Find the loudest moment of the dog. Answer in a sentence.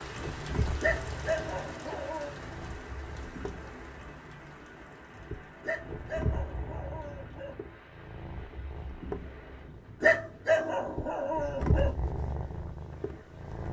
The volume of the dog peaks at 10 seconds.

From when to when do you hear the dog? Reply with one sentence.
You can hear the dog from 0.8 to 2.4 s, from 5.6 to 7.5 s and from 10.0 to 11.9 s.